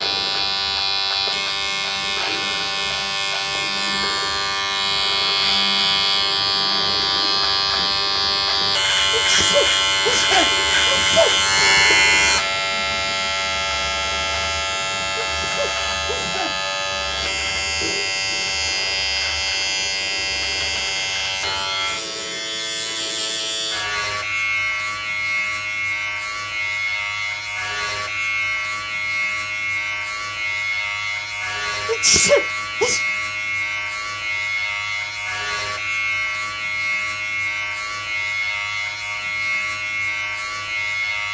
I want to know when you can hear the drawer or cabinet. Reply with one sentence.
The drawer or cabinet can't be heard in this clip.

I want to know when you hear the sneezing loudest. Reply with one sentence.
The volume of the sneezing peaks at 32 seconds.